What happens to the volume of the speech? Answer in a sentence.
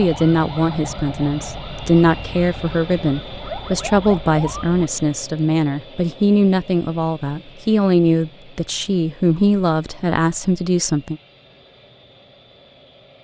The loudness of the speech stays about the same.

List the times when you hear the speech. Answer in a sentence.
The speech can be heard from 0.0 to 11.2 s.